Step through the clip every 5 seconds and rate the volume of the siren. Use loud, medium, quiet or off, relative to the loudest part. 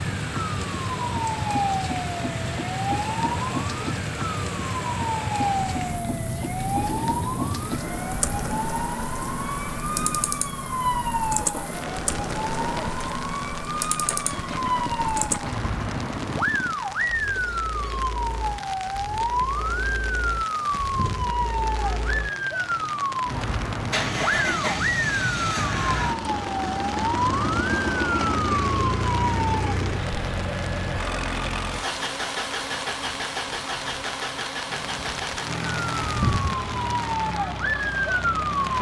loud, loud, loud, loud, loud, loud, off, loud.